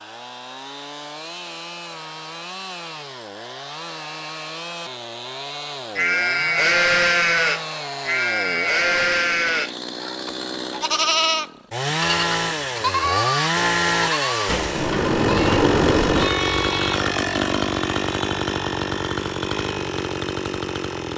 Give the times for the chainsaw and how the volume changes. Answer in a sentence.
The chainsaw can be heard from 0.0 to 21.1 s, getting louder.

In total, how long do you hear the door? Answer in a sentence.
You can hear the door for 2 seconds altogether.